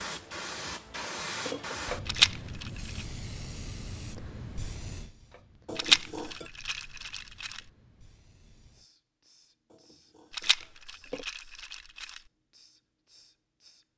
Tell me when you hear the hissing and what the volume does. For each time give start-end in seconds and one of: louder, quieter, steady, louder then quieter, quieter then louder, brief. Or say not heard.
0.0-13.8 quieter.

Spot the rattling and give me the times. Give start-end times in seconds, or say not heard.
2.0-3.0, 5.8-7.6, 10.3-12.2.